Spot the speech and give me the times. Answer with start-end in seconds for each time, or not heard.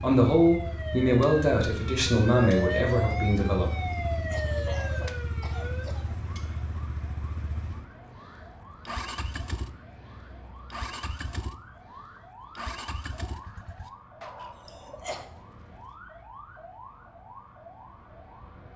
0.0-3.7.